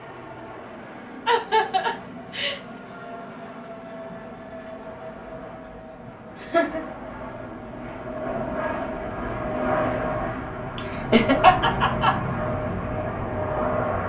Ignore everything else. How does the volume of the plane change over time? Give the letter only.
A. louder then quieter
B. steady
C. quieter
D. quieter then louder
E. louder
E.